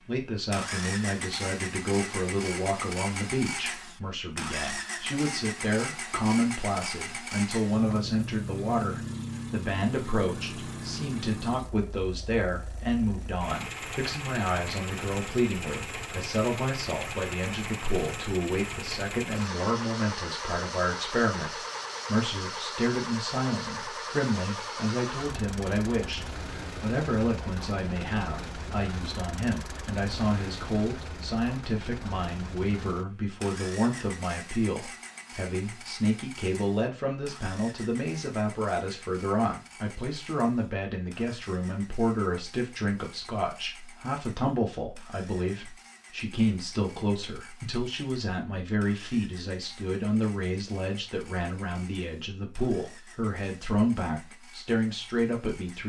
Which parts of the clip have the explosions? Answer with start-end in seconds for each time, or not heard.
not heard.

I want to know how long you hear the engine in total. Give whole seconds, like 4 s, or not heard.
56 s.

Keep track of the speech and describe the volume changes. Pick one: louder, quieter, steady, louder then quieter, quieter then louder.
steady.